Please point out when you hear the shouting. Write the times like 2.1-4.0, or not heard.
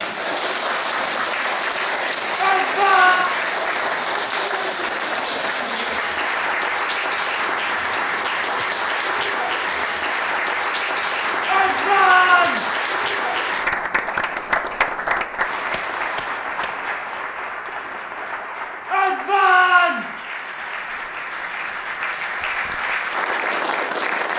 2.4-3.3, 11.4-12.8, 18.9-20.2.